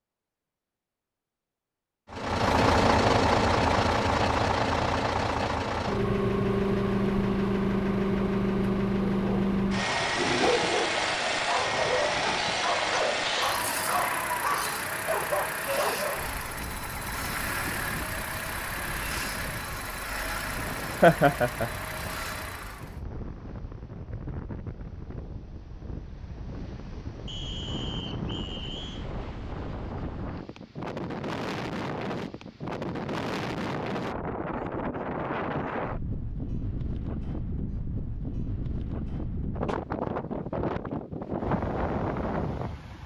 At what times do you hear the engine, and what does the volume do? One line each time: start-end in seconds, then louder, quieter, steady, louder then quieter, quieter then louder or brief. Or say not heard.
2.1-23.0 quieter.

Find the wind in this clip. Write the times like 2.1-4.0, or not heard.
16.1-43.0.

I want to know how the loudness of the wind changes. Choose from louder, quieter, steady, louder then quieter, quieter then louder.
louder.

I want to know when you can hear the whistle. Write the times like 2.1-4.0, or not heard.
27.2-29.1.